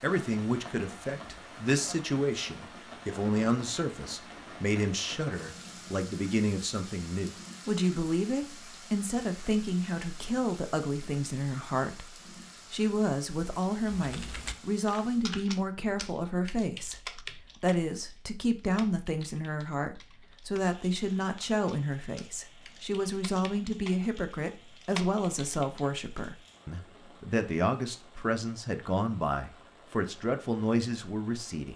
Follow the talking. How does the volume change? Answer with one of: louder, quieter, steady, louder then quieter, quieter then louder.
steady.